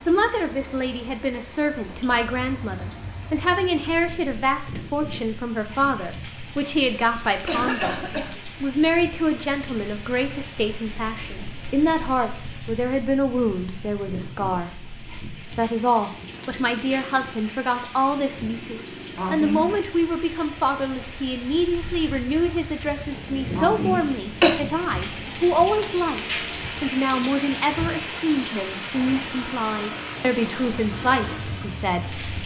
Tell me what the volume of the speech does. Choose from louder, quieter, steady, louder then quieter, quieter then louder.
steady.